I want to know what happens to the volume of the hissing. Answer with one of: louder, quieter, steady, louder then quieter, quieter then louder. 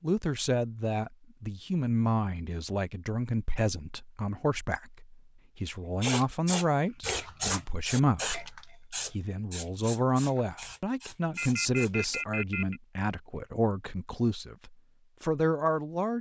quieter.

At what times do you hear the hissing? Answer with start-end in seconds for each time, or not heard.
6.0-12.2.